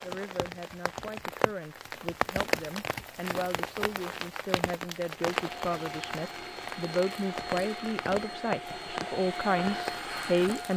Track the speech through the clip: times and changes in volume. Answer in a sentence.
You can hear the speech from 0.0 to 10.7 s, getting louder.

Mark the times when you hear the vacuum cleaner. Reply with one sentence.
You can hear the vacuum cleaner from 5.3 to 10.7 s.